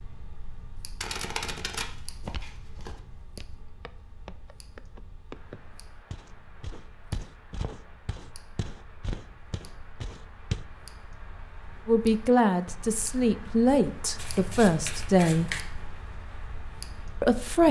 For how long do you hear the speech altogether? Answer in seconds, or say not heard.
4 s.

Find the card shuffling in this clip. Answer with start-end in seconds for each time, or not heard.
1.0-3.0, 14.2-15.7.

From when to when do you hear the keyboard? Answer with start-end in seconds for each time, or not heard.
not heard.